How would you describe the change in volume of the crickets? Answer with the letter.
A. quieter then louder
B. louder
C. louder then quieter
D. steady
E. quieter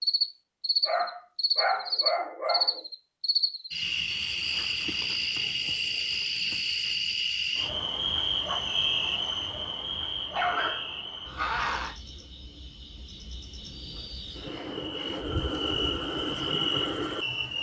A.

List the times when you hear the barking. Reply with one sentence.
The barking can be heard from 0.8 to 2.8 s and from 10.3 to 11.9 s.